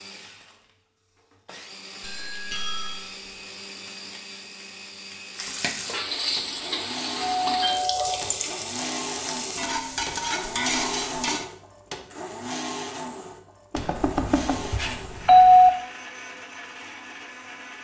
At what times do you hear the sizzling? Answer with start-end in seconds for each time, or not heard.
5.3-11.4.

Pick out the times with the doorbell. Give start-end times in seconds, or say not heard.
2.0-3.0, 7.2-8.3, 13.7-15.7.